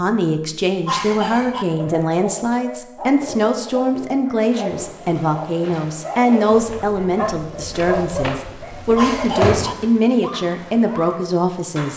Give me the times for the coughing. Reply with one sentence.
You can hear the coughing from 0.8 to 1.6 s and from 8.9 to 9.8 s.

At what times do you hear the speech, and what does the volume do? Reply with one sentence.
The speech can be heard from 0.0 to 11.9 s, at a steady volume.